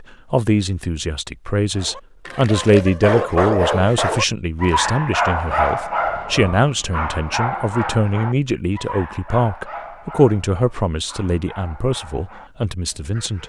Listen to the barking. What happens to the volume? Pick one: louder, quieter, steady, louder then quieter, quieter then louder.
quieter.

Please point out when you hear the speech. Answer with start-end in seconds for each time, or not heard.
0.0-13.4.